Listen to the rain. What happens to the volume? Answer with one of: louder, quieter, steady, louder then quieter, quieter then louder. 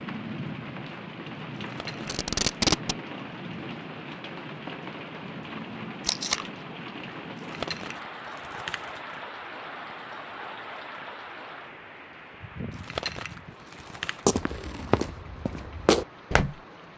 quieter.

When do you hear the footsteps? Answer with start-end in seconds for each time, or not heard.
14.2-16.6.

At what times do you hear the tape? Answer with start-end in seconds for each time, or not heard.
2.0-3.0, 6.0-6.5, 13.7-15.1.